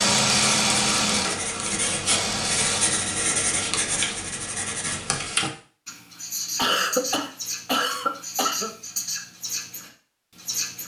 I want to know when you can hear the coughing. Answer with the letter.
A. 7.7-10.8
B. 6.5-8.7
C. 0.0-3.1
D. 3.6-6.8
B.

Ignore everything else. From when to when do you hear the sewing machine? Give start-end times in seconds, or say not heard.
0.0-3.1.